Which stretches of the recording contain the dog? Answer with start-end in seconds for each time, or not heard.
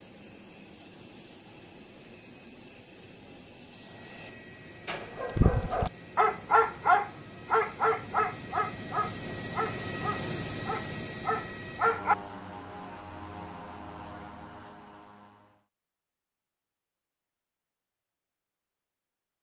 4.8-12.2.